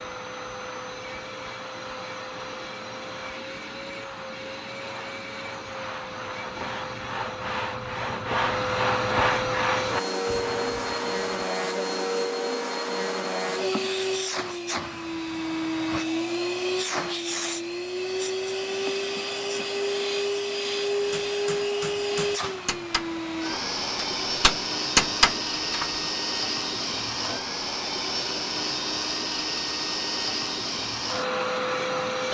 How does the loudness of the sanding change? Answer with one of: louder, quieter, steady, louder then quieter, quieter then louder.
louder.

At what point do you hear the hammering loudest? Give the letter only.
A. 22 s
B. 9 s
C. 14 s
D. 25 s
D.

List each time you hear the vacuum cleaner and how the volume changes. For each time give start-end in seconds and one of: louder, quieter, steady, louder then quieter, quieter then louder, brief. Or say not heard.
0.0-32.2 louder.